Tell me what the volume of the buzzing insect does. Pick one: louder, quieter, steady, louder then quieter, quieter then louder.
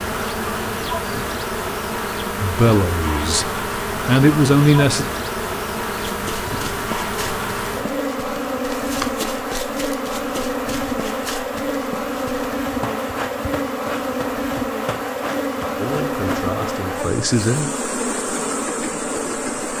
steady.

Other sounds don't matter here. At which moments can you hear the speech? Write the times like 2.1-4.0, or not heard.
2.4-5.0, 15.8-17.7.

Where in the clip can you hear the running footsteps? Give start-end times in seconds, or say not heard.
6.0-16.6.